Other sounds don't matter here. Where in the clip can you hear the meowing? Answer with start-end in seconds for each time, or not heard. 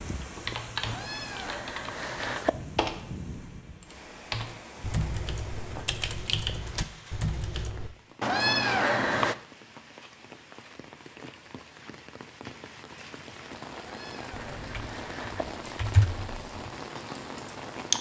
0.8-2.5, 8.2-9.3, 13.8-15.4.